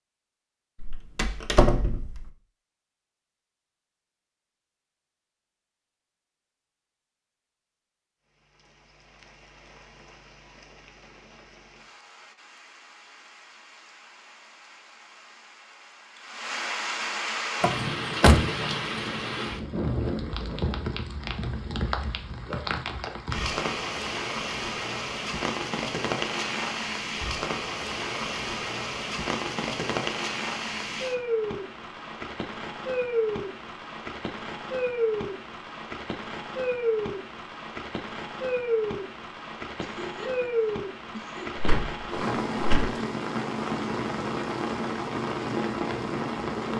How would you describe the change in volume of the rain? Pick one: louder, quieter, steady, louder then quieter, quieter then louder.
louder.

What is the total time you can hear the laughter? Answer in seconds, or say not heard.
2 s.